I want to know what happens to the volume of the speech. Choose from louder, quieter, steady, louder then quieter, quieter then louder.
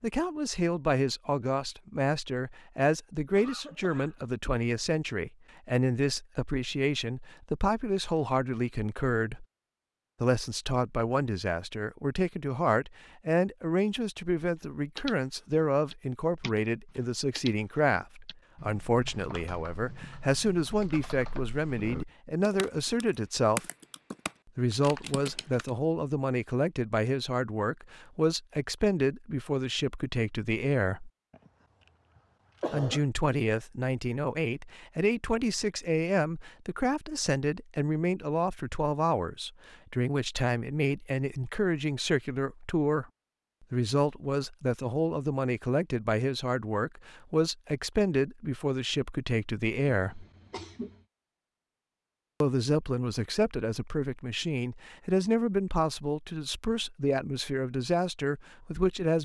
steady.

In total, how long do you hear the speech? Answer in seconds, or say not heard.
53 s.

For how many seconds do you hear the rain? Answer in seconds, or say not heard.
not heard.